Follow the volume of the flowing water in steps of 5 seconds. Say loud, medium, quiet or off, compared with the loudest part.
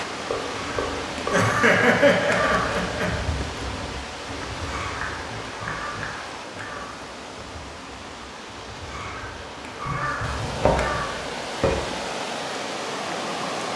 loud, medium, loud.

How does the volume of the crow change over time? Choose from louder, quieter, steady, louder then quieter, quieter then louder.
quieter then louder.